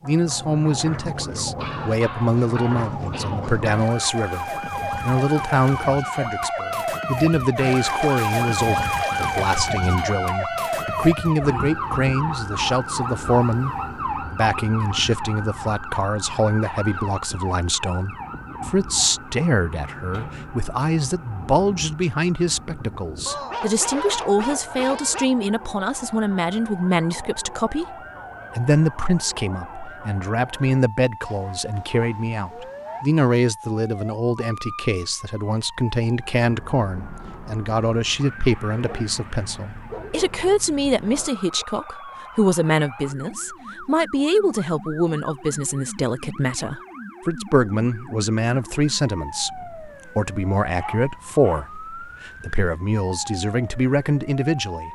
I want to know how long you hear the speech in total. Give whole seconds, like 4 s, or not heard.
54 s.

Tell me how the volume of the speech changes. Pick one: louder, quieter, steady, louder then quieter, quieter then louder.
steady.